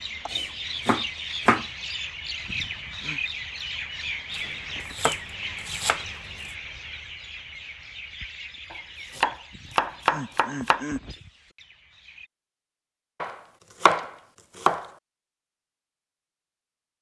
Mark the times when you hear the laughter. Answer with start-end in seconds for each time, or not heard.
2.5-3.2, 9.5-11.1.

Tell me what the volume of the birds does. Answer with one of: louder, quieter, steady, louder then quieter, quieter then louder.
quieter.